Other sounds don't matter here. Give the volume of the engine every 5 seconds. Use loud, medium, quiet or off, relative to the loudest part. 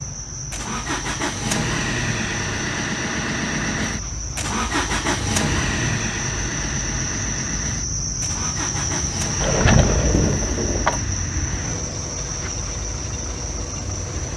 loud, loud, medium.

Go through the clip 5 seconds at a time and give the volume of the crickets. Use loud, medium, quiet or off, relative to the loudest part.
medium, loud, loud.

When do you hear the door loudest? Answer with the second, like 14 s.
10 s.